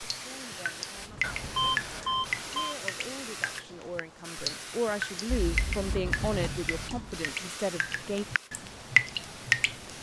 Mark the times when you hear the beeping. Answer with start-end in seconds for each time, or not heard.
1.2-2.8, 5.2-6.0.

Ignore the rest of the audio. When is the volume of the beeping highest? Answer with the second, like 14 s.
2 s.